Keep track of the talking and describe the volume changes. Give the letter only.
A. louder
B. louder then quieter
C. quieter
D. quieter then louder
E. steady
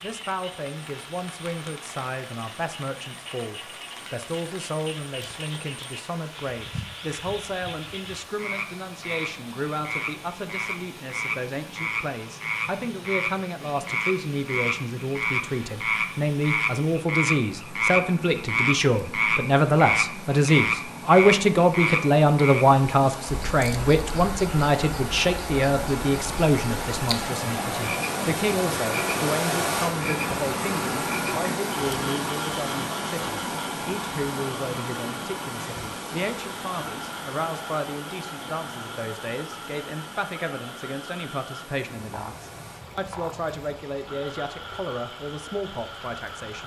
B.